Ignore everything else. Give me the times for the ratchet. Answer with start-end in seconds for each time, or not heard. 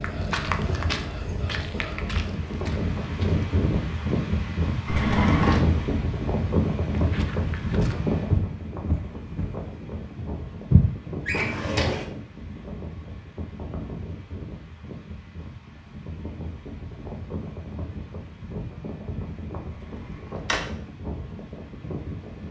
not heard.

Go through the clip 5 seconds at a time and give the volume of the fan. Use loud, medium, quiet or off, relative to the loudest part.
loud, loud, medium, medium, medium.